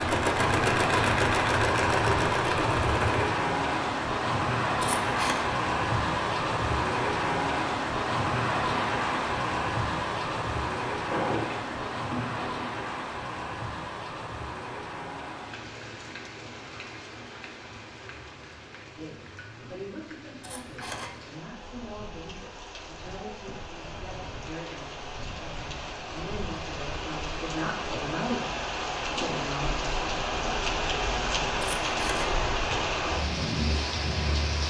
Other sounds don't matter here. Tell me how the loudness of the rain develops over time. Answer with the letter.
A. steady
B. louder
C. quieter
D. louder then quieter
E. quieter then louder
E.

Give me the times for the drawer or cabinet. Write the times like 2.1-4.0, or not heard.
11.1-12.9.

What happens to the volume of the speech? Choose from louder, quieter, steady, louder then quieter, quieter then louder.
louder.